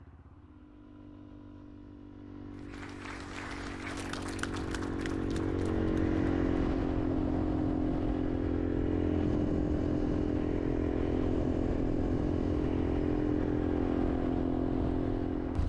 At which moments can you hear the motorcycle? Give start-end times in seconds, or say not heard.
0.0-15.6.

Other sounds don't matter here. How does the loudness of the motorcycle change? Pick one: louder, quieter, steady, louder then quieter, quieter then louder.
louder.